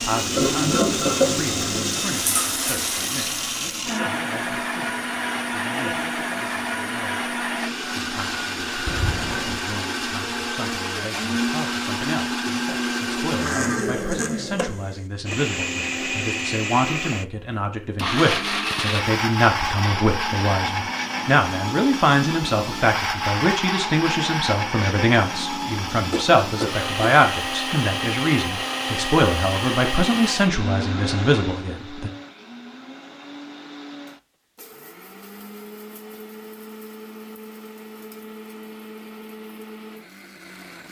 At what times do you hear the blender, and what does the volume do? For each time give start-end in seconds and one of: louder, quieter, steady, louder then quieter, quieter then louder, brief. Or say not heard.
0.0-40.8 quieter.